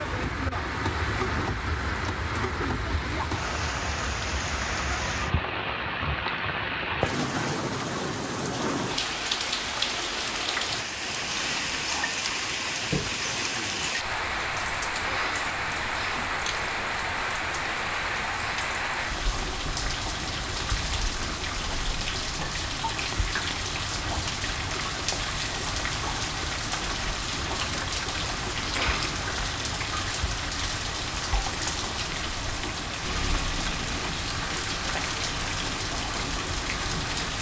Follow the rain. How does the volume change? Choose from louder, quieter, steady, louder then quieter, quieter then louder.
steady.